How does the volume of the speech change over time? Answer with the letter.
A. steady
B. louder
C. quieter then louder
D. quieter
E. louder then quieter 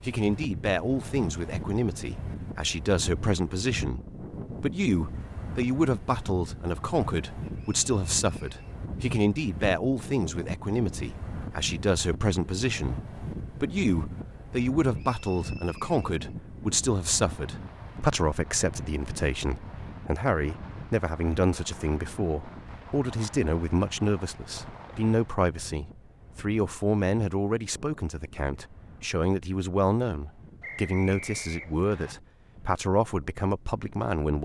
A.